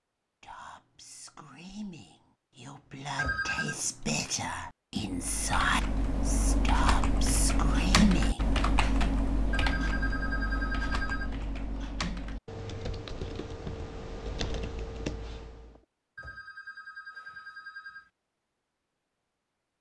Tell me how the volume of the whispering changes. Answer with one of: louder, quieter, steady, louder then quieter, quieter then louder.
louder.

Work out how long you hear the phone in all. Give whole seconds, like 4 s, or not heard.
4 s.